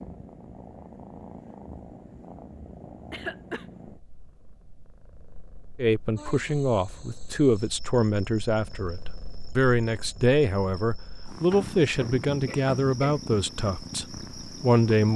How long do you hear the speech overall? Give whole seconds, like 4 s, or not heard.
9 s.